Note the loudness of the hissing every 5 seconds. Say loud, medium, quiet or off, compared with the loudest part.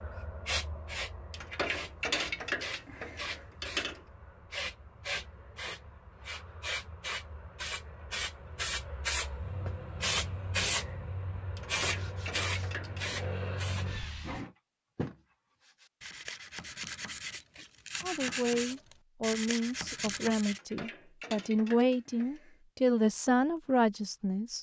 medium, loud, loud, off, off.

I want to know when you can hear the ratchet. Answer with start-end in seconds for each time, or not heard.
1.3-4.0, 11.6-13.2, 20.5-22.6.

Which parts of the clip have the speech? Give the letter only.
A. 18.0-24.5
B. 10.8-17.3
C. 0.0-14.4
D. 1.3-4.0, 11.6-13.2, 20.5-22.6
A.